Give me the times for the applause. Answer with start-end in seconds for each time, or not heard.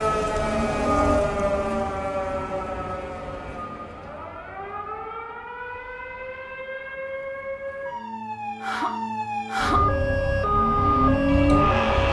not heard.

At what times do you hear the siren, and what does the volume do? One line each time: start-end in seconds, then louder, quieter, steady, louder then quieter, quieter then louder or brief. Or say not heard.
0.0-12.0 quieter then louder.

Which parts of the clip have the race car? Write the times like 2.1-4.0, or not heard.
0.0-2.6, 9.6-12.0.